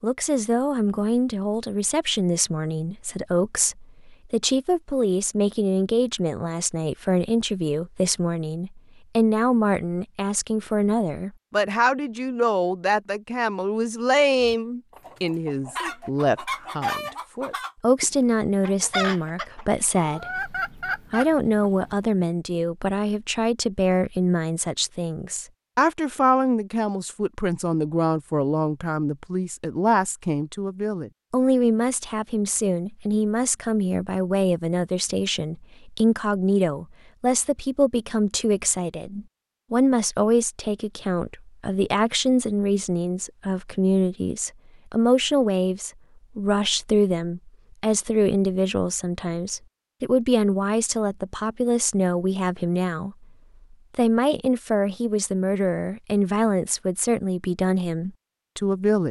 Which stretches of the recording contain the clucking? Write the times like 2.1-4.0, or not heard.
14.4-21.9.